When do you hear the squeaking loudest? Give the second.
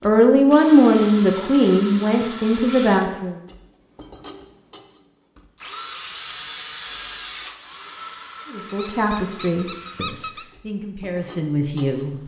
10 s.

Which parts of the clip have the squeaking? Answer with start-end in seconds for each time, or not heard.
8.7-10.4.